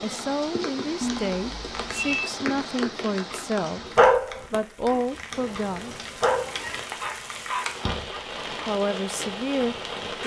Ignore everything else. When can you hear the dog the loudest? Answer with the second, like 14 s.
4 s.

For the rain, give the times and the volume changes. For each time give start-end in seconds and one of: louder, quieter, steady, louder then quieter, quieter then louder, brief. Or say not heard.
0.0-10.2 quieter then louder.